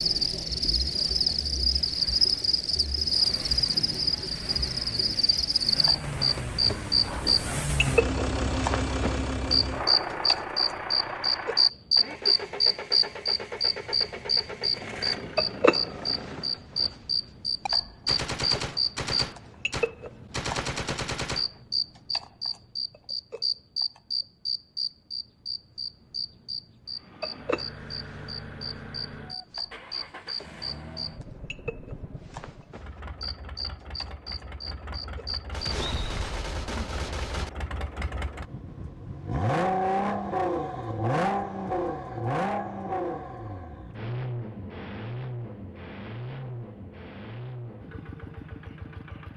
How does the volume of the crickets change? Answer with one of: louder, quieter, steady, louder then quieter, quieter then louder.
quieter.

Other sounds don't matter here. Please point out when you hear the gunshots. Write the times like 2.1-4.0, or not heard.
5.9-7.9, 17.6-21.6, 35.5-37.5.